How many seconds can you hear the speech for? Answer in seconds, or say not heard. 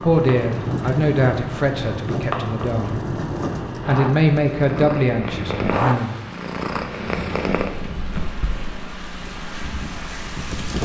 5 s.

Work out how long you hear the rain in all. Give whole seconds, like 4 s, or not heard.
11 s.